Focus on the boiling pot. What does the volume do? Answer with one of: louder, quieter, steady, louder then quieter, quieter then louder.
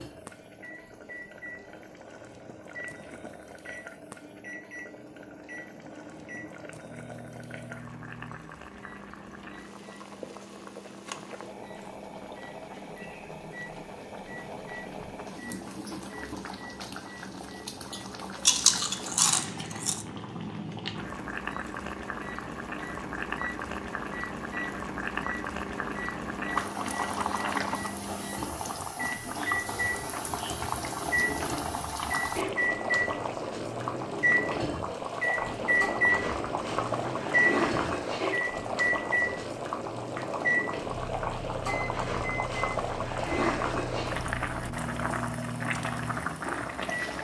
louder.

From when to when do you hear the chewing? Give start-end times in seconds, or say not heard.
18.4-20.1.